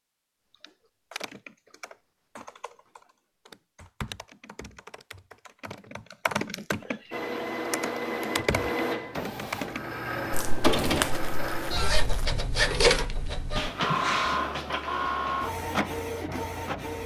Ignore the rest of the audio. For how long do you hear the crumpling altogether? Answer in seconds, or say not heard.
2 s.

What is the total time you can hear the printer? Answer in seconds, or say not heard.
10 s.